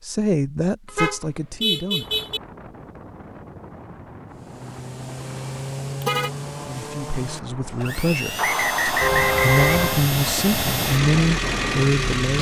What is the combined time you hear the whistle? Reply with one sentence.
The whistle can be heard for 2 seconds in total.